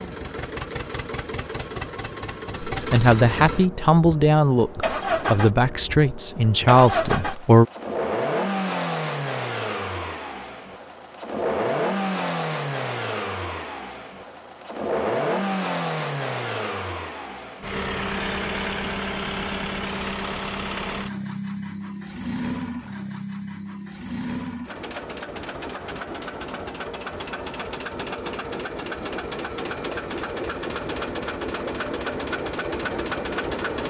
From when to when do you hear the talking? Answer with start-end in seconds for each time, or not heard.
2.7-7.7.